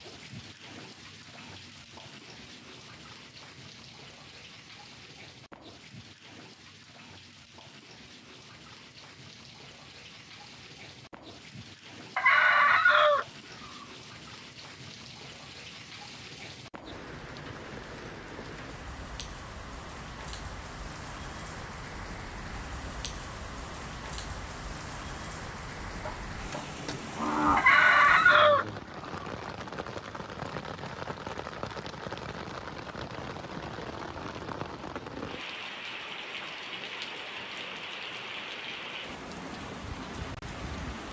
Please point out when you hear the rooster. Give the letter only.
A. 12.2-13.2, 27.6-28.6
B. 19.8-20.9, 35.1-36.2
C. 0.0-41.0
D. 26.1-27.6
A.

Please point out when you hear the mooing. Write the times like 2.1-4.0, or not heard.
26.1-27.6.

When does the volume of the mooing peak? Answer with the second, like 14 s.
27 s.